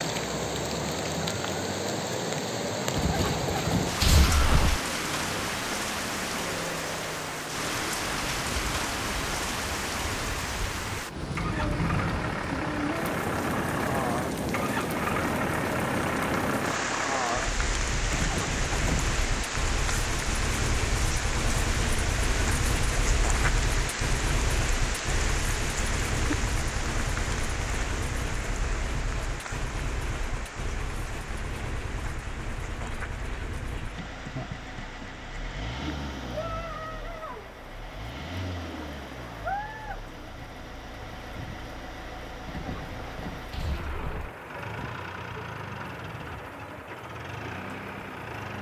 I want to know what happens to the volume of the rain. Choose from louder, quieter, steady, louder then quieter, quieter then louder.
quieter.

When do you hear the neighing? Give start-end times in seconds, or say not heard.
3.0-4.8, 18.1-19.1, 42.5-44.3.